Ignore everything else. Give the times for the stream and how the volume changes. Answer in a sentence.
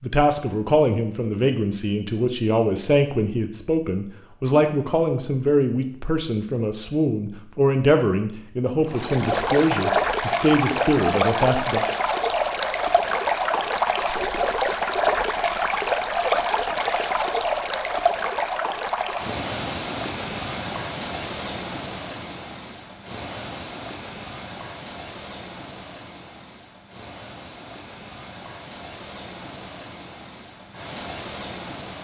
The stream can be heard from 8.8 to 32.0 s, getting quieter.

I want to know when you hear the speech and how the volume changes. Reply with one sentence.
The speech can be heard from 0.0 to 11.8 s, at a steady volume.